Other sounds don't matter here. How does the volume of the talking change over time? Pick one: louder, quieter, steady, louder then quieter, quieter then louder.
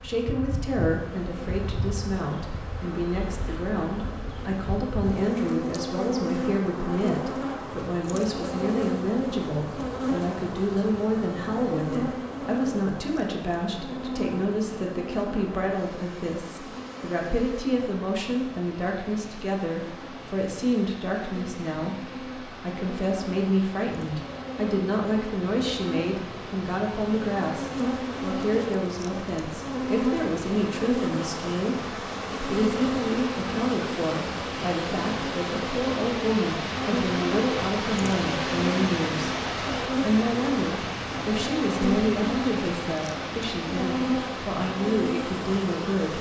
steady.